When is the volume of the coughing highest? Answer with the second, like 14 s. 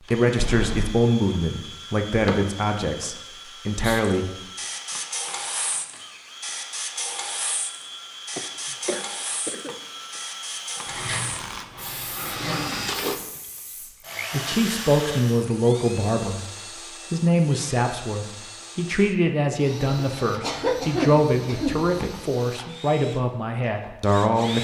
21 s.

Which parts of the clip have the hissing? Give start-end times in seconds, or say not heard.
3.7-15.2.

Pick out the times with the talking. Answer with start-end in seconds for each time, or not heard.
0.0-4.3, 14.3-24.5.